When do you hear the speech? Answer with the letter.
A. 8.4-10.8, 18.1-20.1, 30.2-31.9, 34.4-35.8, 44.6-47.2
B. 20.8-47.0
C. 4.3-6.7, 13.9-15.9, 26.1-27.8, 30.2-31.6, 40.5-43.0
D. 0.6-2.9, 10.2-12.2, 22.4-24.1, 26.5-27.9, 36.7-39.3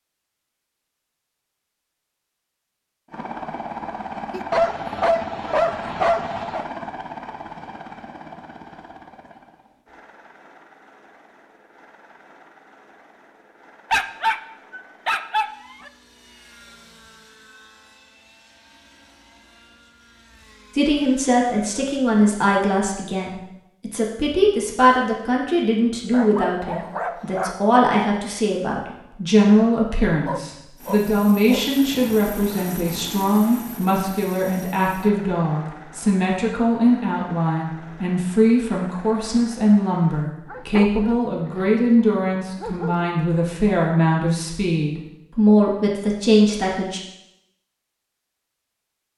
B.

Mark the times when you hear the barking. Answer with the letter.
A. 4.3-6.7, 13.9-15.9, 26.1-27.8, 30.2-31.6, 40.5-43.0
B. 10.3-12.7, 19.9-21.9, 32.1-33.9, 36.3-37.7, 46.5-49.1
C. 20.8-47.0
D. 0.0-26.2
A.